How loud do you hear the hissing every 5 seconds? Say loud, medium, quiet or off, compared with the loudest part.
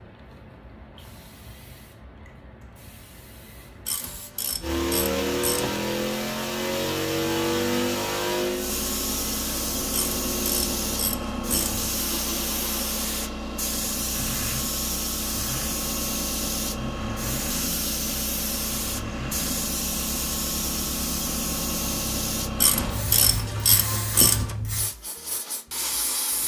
quiet, loud, loud, loud, loud, loud.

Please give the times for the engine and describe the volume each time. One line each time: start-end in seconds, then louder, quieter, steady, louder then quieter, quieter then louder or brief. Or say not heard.
4.6-23.5 quieter.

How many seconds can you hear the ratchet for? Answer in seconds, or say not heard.
6 s.